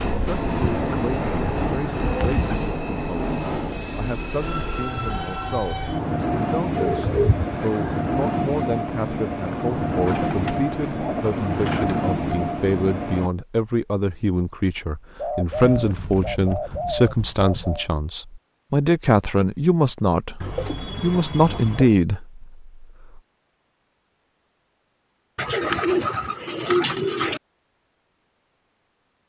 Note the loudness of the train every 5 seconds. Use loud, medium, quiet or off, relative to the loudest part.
loud, loud, loud, off, off, off.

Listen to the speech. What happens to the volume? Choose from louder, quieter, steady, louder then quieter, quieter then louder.
louder.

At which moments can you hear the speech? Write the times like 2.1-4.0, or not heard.
0.1-23.2.